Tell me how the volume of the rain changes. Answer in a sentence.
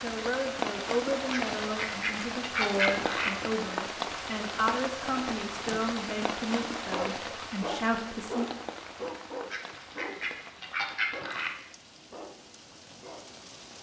The volume of the rain goes down.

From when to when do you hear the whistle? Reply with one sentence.
You can't hear the whistle here.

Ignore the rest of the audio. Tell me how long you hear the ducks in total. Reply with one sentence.
You can hear the ducks for 4 seconds altogether.